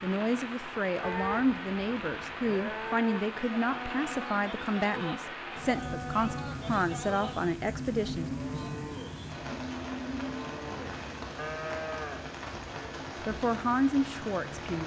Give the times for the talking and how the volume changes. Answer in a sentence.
You can hear the talking from 0.0 to 8.3 s, at a steady volume; and briefly from 13.2 to 14.8 s.